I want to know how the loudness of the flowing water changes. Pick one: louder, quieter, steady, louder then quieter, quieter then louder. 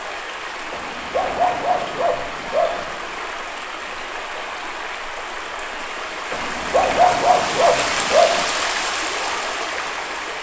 louder.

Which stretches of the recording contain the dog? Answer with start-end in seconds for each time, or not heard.
0.7-3.0, 6.3-8.4.